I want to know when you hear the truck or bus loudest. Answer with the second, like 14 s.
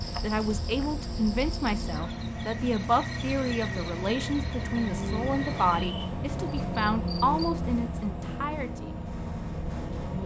7 s.